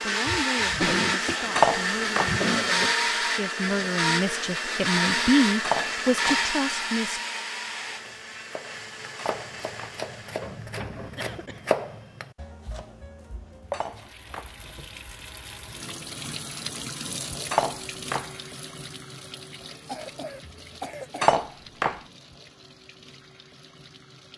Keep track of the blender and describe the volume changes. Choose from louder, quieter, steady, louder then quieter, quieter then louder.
quieter.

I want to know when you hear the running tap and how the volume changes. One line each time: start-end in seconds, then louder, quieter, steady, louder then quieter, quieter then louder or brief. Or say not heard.
13.8-24.3 louder then quieter.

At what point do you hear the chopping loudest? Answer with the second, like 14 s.
12 s.